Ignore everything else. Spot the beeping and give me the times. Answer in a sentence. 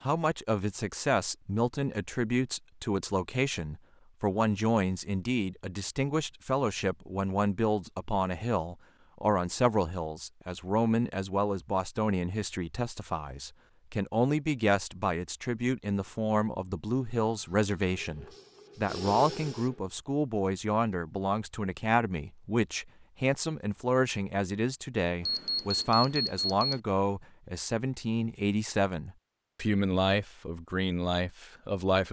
The beeping can be heard from 25.2 to 26.8 s.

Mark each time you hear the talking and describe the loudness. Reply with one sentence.
You can hear the talking from 0.0 to 32.0 s, at a steady volume.